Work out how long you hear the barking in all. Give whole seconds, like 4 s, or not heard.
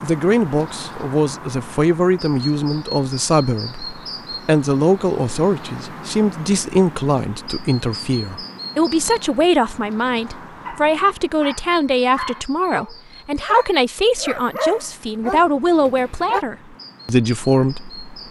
6 s.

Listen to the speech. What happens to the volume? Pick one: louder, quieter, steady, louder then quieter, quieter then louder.
steady.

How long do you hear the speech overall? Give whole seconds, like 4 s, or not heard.
18 s.